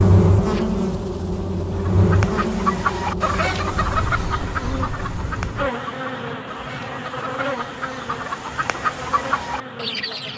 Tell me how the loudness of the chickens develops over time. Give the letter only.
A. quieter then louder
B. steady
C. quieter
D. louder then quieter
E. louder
A.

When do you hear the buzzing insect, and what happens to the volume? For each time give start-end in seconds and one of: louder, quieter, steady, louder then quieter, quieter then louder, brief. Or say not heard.
0.0-10.3 quieter.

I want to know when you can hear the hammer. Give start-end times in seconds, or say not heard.
not heard.